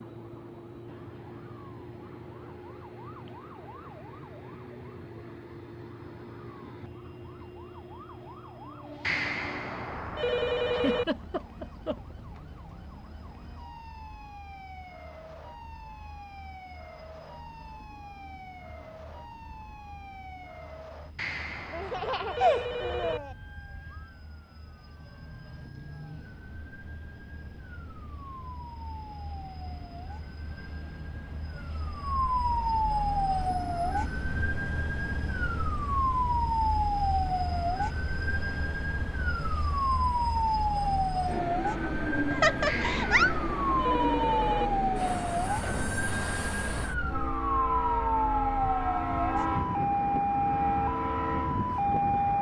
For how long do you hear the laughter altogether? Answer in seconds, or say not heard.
4 s.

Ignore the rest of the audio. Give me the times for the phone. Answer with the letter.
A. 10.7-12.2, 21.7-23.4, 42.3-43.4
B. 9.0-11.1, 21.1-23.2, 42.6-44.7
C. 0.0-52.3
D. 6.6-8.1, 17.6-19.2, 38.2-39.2
B.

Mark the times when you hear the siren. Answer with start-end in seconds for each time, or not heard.
0.0-52.3.